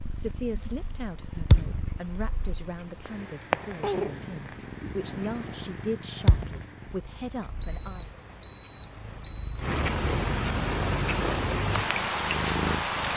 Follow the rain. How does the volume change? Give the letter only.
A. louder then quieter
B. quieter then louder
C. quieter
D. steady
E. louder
E.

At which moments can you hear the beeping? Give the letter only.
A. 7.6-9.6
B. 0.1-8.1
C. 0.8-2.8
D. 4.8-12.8
A.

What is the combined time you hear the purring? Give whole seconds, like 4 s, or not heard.
13 s.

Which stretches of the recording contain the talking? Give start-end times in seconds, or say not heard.
0.1-8.1.